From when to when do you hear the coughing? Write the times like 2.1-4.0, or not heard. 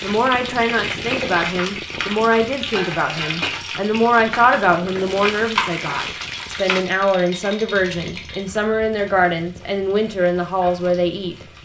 not heard.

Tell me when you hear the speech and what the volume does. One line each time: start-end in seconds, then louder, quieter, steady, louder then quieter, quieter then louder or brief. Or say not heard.
0.0-11.3 steady.